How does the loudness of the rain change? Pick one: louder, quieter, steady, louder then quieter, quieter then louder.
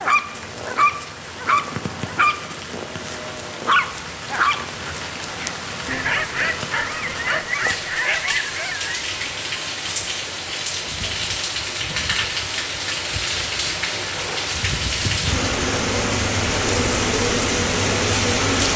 louder.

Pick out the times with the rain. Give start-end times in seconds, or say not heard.
0.0-18.7.